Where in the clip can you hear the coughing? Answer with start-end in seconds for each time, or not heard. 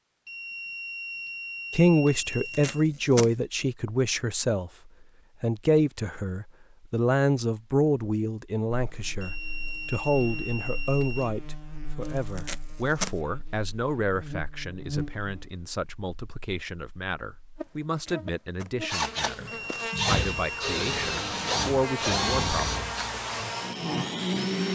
not heard.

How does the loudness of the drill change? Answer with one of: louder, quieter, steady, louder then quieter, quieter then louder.
quieter.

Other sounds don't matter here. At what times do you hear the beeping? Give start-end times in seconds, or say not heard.
0.2-2.9, 9.2-11.3, 19.4-20.7.